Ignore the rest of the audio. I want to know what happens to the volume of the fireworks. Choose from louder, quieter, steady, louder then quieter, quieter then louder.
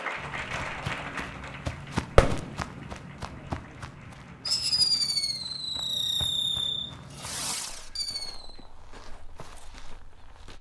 louder then quieter.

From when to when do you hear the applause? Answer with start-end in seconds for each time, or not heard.
0.0-5.1.